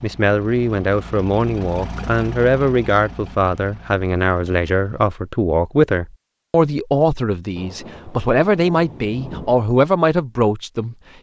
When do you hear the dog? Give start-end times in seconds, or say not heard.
not heard.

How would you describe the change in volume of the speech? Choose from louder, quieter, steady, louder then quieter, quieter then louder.
steady.